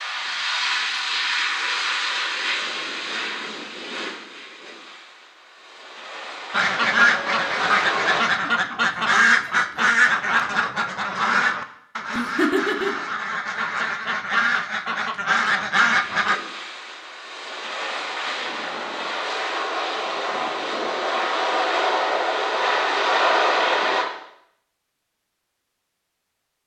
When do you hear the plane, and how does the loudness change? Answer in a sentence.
The plane can be heard from 0.0 to 8.2 s, getting quieter then louder; and from 16.0 to 24.1 s, getting louder.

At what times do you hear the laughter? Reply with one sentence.
You can hear the laughter from 12.1 to 13.0 s.